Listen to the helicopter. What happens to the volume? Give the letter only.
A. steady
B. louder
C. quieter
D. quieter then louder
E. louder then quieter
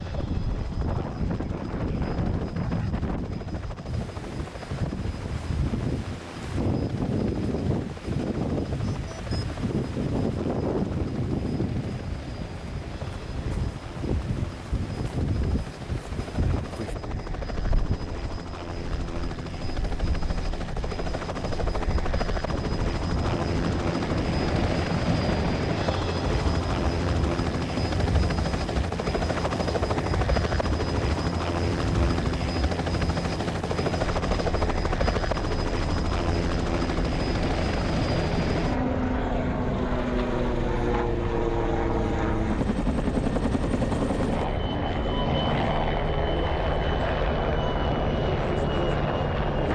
B.